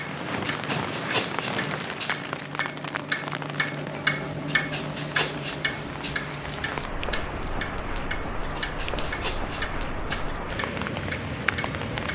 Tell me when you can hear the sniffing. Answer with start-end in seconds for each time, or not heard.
0.2-2.1, 4.5-6.2, 8.3-10.3.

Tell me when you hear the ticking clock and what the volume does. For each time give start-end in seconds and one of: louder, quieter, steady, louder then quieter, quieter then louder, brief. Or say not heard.
0.0-12.1 louder then quieter.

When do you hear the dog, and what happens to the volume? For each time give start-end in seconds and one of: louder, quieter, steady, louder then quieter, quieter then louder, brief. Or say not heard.
not heard.